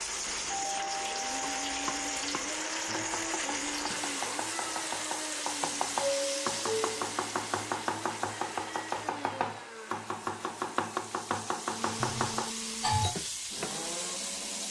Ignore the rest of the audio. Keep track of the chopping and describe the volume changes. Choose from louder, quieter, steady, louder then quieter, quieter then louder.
louder.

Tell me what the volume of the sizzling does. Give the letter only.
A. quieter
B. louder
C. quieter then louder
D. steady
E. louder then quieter
C.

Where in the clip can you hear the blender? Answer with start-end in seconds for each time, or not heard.
0.0-14.6.